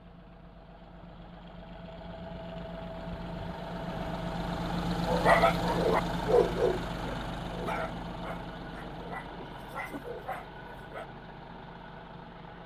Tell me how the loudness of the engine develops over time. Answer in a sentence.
The volume of the engine goes up, then down.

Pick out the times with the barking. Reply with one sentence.
The barking can be heard from 5.0 to 11.1 s.